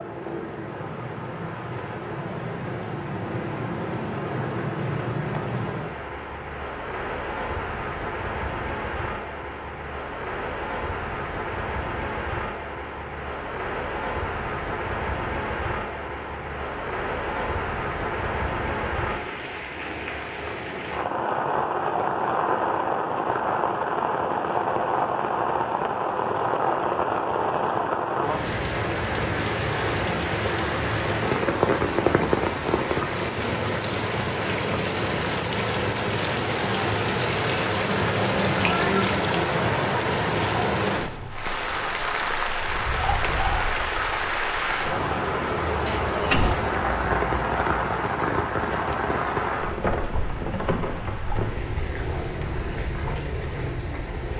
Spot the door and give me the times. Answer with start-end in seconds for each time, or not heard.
45.9-46.6.